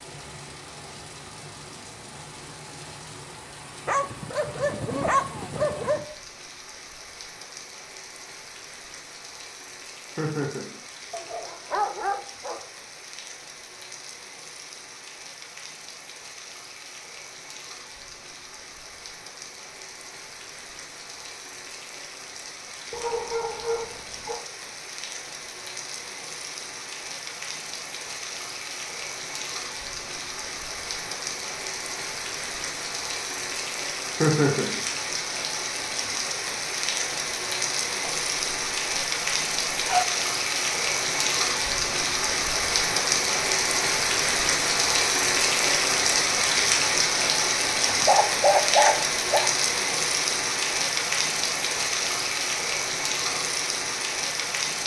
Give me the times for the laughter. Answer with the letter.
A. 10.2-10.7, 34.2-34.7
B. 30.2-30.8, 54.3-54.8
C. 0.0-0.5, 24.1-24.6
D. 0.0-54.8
A.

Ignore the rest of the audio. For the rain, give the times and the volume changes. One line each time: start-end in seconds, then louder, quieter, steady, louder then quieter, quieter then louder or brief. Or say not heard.
0.0-54.8 louder.